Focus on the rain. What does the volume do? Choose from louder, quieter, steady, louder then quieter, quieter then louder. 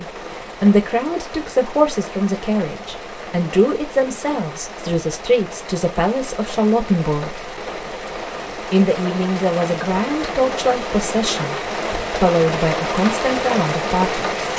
louder.